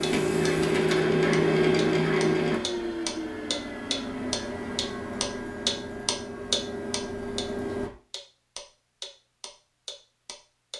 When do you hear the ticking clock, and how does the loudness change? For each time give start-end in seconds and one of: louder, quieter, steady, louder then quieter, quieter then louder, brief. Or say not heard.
0.0-7.5 louder
8.1-10.7 brief.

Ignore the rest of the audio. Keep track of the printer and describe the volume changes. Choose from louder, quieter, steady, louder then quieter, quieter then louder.
quieter.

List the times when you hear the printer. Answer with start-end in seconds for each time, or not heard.
0.0-7.9.